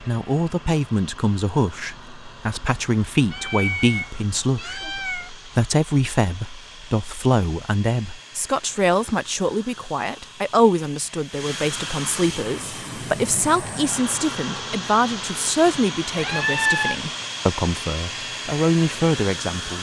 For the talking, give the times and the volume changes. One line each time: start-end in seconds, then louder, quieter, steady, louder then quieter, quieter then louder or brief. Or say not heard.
0.0-19.7 steady.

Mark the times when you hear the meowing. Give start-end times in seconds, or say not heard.
3.3-5.3, 16.1-16.9.